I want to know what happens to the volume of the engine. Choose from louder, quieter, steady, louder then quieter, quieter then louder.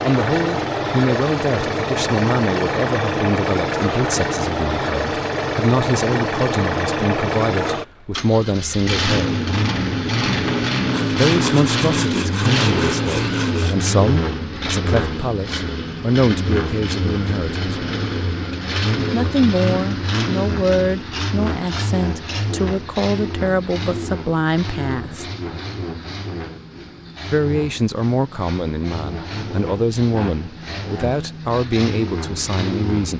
quieter.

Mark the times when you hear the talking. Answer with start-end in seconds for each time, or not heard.
0.0-9.3, 11.1-17.6, 19.1-25.2, 27.3-33.1.